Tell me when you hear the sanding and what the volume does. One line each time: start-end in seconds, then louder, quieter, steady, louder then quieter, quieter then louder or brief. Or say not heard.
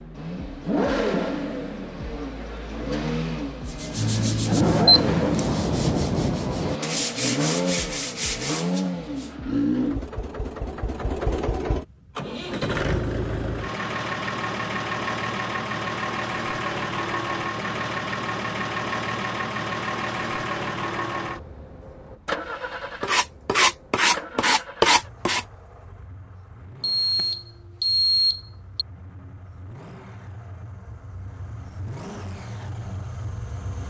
3.6-9.3 quieter
23.0-25.4 brief.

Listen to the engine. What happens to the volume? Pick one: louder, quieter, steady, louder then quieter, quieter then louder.
quieter.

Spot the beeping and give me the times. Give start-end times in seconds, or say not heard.
4.8-5.4, 26.8-28.9.